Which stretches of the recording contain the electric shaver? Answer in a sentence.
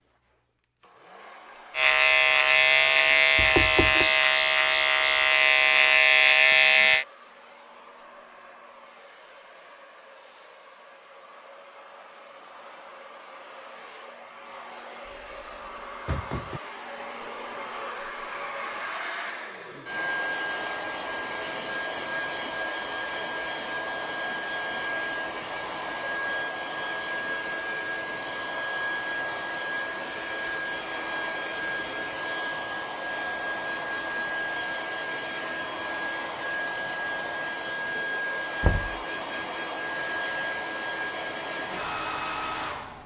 The electric shaver can be heard from 1.8 to 7.0 s.